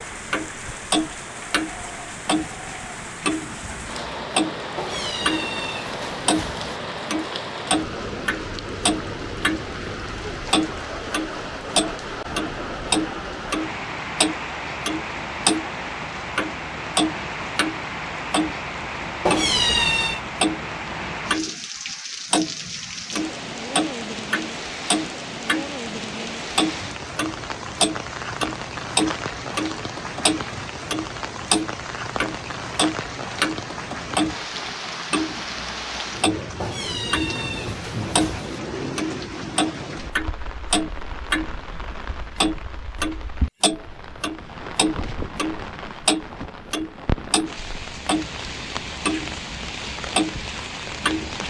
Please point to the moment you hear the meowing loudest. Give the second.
20 s.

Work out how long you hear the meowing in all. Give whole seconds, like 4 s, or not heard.
5 s.